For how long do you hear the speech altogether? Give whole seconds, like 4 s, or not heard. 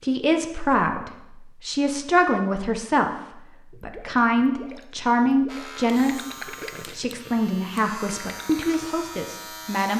10 s.